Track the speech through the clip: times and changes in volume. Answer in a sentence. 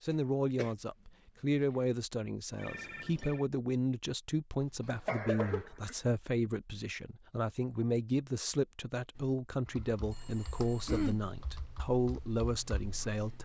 The speech can be heard from 0.0 to 13.4 s, at a steady volume.